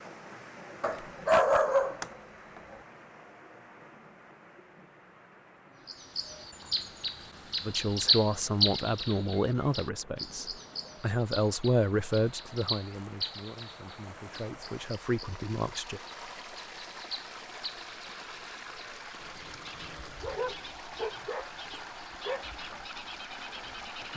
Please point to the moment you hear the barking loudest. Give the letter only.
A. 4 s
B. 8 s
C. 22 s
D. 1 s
D.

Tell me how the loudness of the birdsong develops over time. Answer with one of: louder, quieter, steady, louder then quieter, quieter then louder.
quieter.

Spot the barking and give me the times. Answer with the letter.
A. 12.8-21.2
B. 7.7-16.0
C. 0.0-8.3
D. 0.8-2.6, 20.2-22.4
D.